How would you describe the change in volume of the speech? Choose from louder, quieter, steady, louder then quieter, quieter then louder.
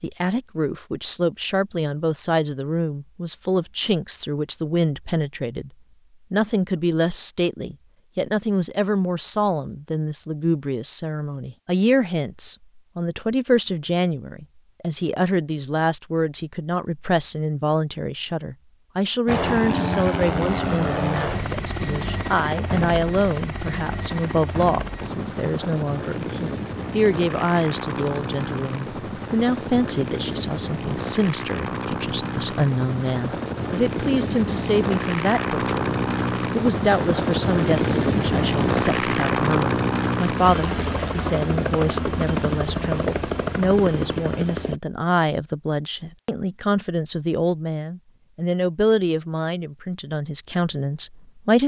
steady.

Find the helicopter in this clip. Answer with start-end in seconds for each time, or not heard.
19.2-44.8.